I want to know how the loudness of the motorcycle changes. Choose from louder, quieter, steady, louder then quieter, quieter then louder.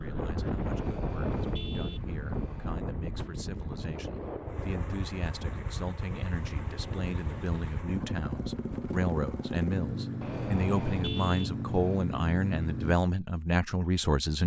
louder.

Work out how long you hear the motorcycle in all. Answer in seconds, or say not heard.
11 s.